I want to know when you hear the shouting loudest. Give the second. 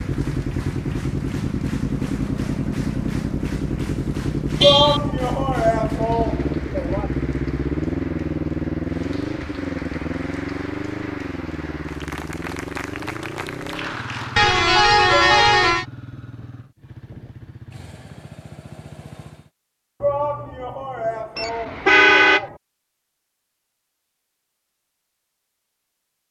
5 s.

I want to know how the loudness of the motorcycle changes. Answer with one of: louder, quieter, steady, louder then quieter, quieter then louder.
quieter.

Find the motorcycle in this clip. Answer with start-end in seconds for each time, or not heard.
0.0-19.5.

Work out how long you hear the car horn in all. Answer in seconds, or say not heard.
3 s.